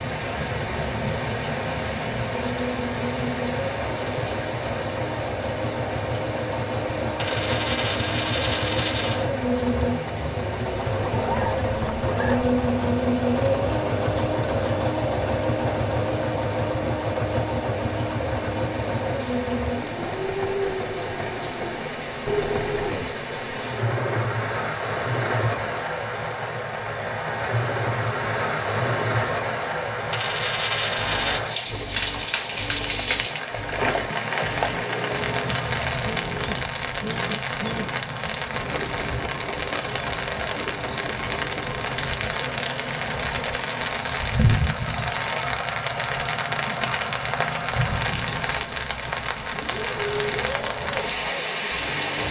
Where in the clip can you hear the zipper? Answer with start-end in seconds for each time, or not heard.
11.0-12.6.